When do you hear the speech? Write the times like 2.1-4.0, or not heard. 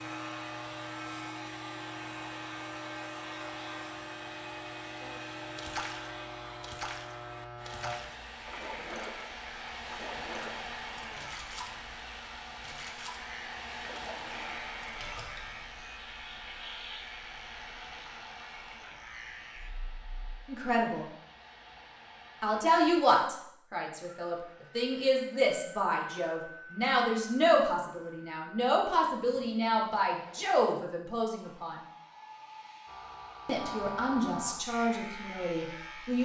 20.4-21.1, 22.4-31.8, 33.5-36.2.